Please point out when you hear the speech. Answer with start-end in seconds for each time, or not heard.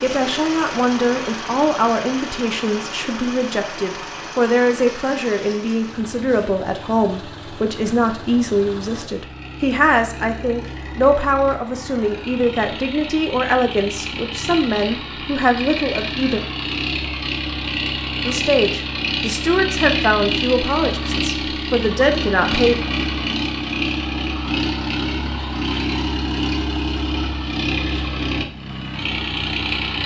0.0-16.4, 18.2-22.8.